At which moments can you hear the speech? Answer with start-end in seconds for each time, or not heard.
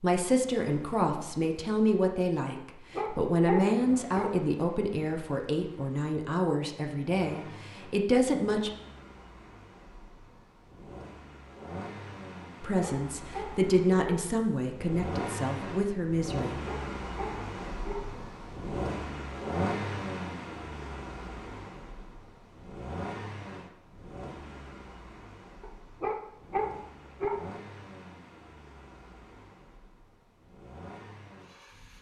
0.0-8.7, 12.6-16.6.